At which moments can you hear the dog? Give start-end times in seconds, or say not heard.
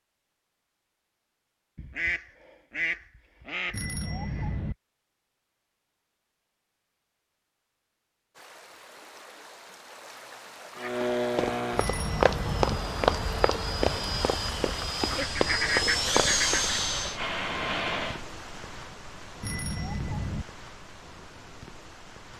not heard.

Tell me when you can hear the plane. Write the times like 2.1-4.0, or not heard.
10.8-18.2.